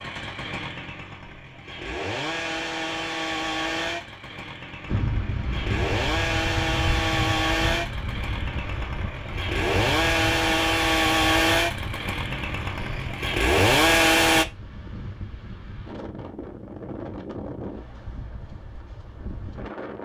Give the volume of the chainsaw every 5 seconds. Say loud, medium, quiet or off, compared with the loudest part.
medium, medium, loud, off.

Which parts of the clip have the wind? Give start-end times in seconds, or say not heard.
4.8-20.0.